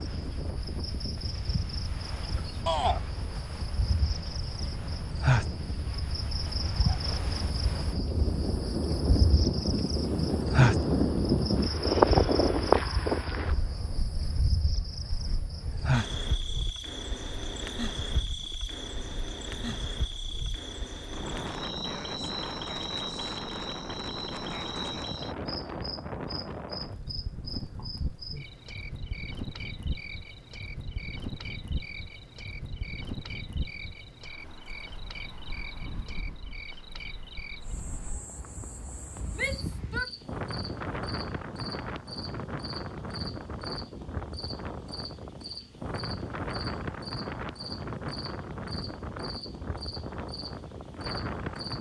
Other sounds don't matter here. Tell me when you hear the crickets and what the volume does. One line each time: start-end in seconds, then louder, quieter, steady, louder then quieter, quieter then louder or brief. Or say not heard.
0.0-51.7 quieter.